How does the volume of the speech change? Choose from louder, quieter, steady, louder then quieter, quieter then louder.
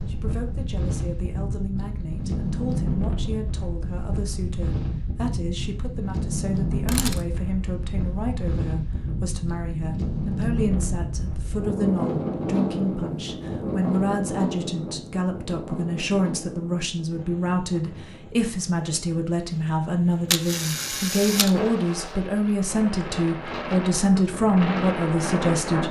louder.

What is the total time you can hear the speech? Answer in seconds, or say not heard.
26 s.